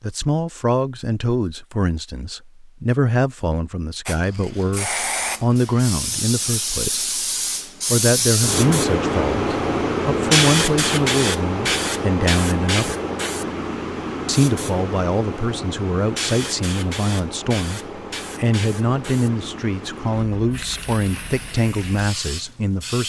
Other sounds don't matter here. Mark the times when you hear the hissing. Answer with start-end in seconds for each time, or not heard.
4.0-23.0.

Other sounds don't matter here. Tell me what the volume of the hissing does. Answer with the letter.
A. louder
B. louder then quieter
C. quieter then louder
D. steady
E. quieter
B.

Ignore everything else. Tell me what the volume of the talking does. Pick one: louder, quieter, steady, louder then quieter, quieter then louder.
steady.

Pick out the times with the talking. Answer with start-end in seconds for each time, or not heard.
0.0-7.1, 7.9-12.9, 14.2-23.0.